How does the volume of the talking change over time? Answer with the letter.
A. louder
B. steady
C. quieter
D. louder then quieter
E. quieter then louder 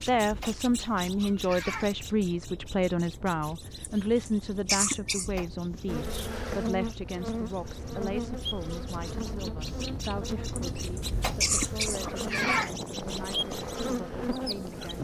C.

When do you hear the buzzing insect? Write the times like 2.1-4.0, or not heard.
5.8-14.9.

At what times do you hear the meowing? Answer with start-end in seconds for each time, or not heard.
0.2-2.0, 5.2-5.9, 11.1-12.8.